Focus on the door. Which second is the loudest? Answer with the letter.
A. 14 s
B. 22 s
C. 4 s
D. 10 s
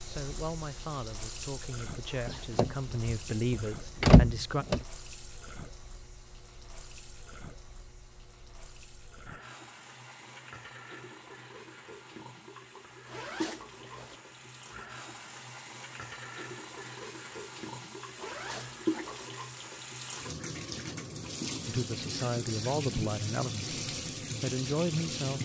C.